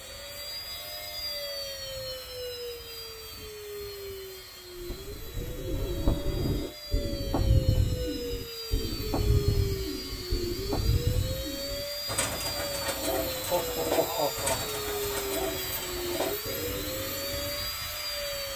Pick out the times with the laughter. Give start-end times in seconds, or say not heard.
13.5-15.0.